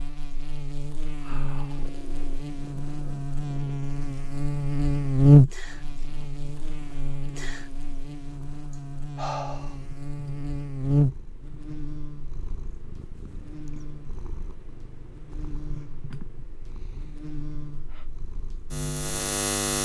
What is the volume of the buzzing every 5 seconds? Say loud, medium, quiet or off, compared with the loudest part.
medium, loud, medium, medium.